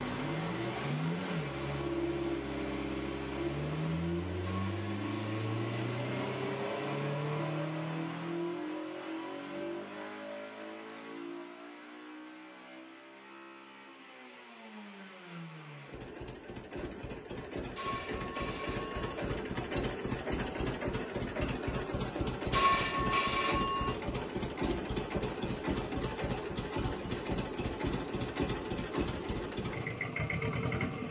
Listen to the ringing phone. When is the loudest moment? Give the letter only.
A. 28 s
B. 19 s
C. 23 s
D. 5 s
C.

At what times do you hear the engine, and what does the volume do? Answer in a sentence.
The engine can be heard from 0.0 to 31.0 s, getting quieter then louder.